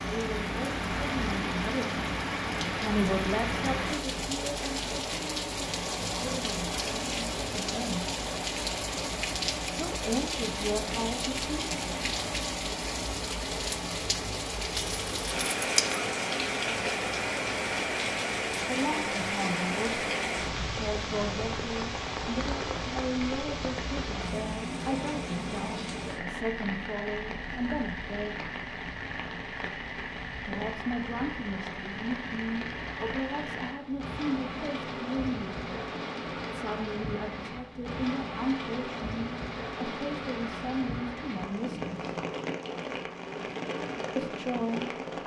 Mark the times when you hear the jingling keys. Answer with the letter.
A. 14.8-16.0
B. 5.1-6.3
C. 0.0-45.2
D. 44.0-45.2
A.